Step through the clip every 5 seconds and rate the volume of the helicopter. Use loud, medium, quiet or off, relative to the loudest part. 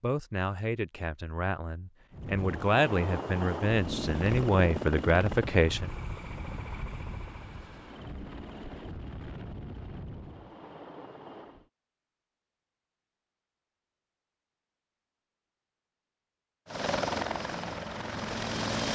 loud, medium, quiet, loud.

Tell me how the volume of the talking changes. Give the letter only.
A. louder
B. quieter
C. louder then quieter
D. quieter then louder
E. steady
A.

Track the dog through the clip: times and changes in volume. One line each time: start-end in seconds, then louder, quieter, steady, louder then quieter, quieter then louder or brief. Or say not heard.
not heard.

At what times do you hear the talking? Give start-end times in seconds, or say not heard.
0.0-5.9.